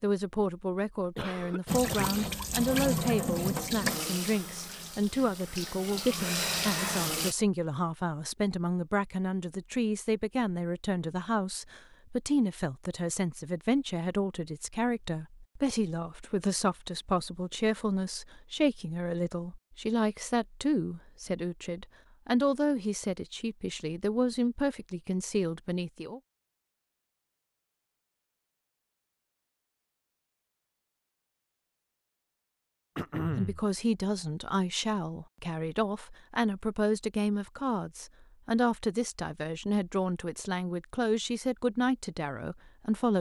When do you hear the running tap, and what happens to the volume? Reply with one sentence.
The running tap can be heard from 1.6 to 7.3 s, getting quieter then louder.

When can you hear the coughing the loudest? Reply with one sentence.
The volume of the coughing peaks at 33 seconds.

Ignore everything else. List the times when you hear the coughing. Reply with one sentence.
You can hear the coughing from 1.1 to 2.2 s and from 33.0 to 33.6 s.